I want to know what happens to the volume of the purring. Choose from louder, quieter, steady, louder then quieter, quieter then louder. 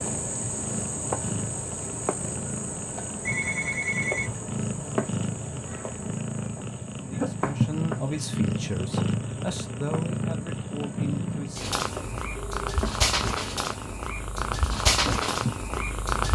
louder.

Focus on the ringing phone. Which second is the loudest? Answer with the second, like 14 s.
4 s.